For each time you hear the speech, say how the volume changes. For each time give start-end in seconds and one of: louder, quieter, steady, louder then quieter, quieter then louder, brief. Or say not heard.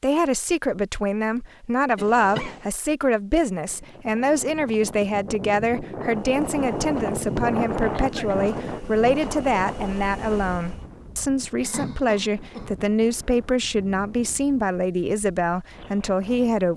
0.0-16.7 steady.